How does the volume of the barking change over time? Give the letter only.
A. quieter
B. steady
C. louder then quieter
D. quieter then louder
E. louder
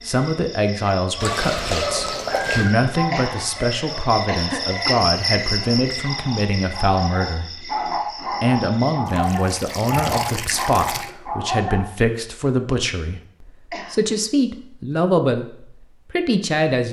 D.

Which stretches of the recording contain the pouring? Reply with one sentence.
You can hear the pouring from 1.2 to 2.8 s and from 9.1 to 11.2 s.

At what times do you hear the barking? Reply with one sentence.
The barking can be heard from 1.1 to 11.8 s.